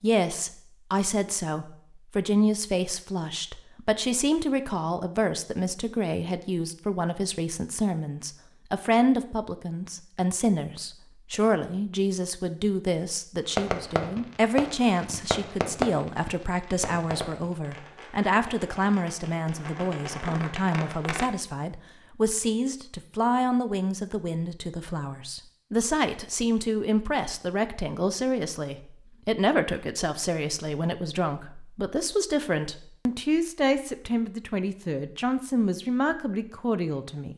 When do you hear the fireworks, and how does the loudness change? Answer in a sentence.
You can hear the fireworks from 13.6 to 21.3 s, getting quieter then louder.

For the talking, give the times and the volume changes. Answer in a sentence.
You can hear the talking from 0.0 to 37.3 s, at a steady volume.